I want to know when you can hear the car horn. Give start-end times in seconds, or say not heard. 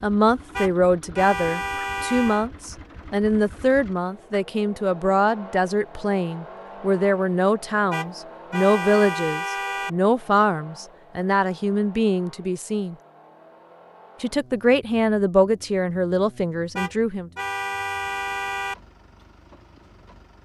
0.5-2.5, 7.9-9.9, 16.8-18.8.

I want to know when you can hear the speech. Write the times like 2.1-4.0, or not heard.
0.0-12.9, 14.2-17.3.